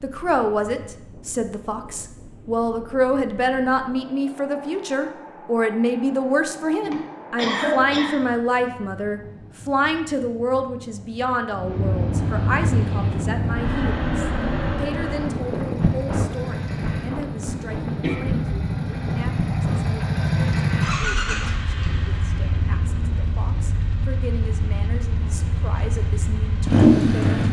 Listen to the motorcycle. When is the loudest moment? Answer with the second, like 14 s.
27 s.